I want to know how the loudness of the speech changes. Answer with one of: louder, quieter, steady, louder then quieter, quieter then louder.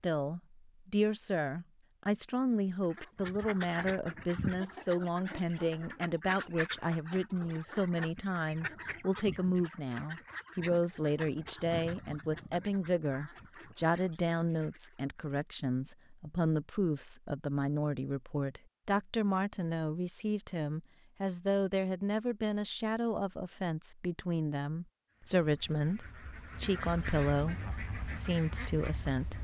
steady.